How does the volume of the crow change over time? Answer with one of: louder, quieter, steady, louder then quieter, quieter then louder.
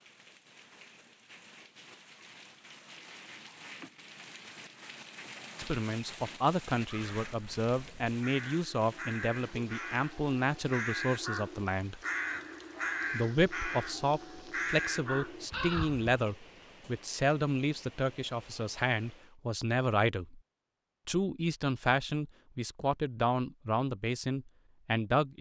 louder.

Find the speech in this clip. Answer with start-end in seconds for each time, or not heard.
5.5-12.0, 13.1-20.4, 21.1-25.3.